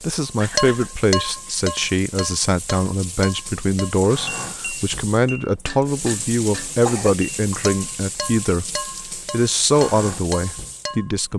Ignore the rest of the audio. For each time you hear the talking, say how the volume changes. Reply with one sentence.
The talking can be heard from 0.0 to 11.3 s, at a steady volume.